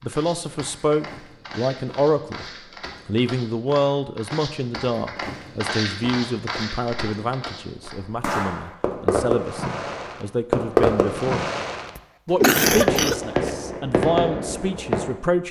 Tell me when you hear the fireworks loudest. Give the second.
11 s.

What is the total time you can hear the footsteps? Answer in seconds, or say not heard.
8 s.